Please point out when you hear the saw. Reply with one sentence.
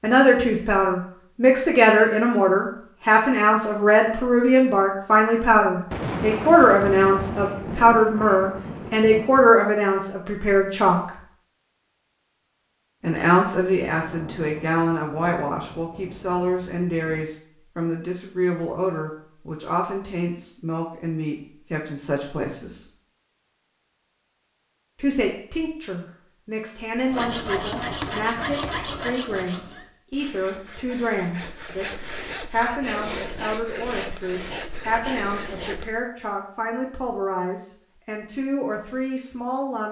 You can hear the saw from 26.9 to 35.9 s.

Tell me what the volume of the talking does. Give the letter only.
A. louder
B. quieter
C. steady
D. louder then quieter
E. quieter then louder
B.